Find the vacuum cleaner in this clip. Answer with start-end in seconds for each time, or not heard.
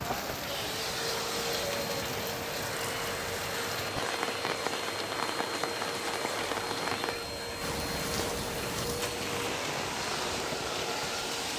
0.1-11.5.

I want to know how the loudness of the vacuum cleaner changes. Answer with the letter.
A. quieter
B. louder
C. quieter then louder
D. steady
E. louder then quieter
D.